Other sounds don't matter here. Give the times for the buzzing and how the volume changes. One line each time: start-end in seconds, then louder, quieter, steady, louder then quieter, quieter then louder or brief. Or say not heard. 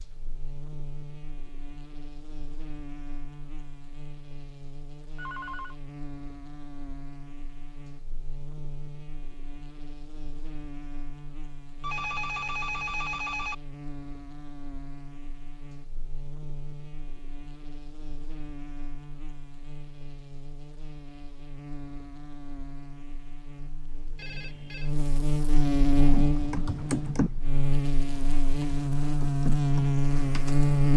0.0-30.9 louder.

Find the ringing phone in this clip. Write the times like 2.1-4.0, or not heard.
5.2-5.8, 11.8-13.6, 24.1-24.9.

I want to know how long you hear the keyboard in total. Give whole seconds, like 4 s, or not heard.
5 s.